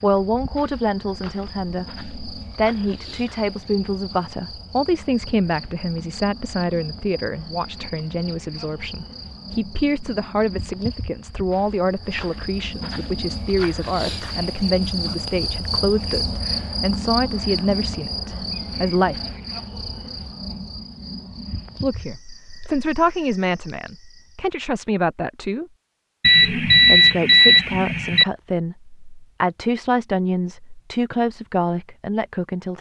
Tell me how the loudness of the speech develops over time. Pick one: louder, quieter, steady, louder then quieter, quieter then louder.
steady.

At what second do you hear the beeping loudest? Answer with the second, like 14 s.
27 s.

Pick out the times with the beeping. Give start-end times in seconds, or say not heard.
26.2-28.2.